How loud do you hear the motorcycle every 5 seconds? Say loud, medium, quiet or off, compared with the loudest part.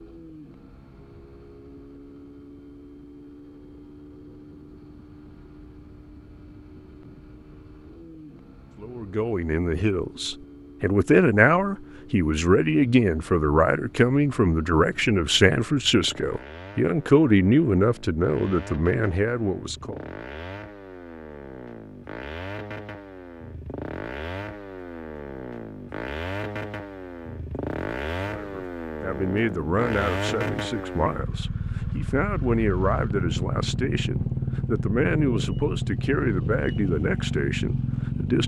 quiet, quiet, quiet, quiet, medium, medium, loud, loud.